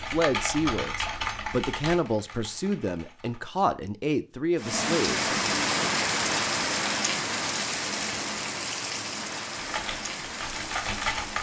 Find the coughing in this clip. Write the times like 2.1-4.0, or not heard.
not heard.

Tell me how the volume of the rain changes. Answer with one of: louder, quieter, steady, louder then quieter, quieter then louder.
quieter.